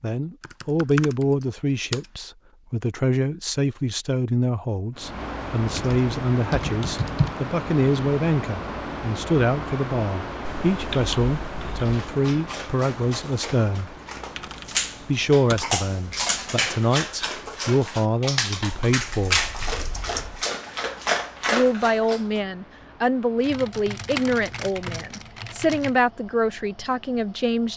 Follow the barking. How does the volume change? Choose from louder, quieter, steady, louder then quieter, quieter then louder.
louder.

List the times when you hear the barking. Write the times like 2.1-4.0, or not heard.
11.8-22.4.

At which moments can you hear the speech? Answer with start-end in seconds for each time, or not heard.
0.0-13.9, 15.0-19.4, 21.5-27.7.